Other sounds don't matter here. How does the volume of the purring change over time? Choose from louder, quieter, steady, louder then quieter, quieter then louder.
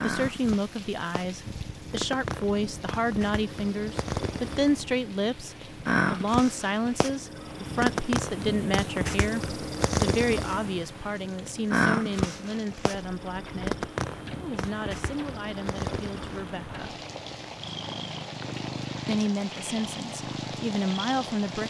louder then quieter.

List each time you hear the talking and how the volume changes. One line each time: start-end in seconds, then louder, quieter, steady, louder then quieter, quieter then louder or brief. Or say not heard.
0.0-16.9 quieter
19.1-21.6 brief.